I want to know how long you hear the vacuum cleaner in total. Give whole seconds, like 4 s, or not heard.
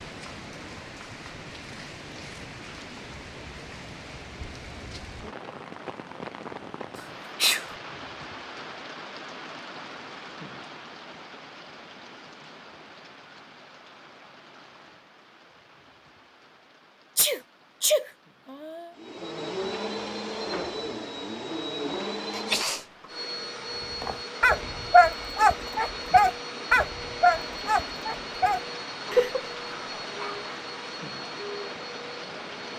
14 s.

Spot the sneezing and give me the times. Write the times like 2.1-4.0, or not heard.
7.0-7.7, 17.1-18.9, 22.3-22.9.